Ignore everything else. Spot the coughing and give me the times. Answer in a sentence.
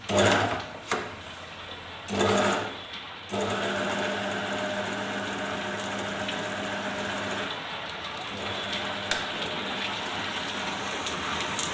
The coughing can't be heard in this clip.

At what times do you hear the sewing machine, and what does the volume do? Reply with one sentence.
The sewing machine can be heard from 0.0 to 11.6 s, getting quieter.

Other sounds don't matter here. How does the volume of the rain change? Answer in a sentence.
The volume of the rain goes up.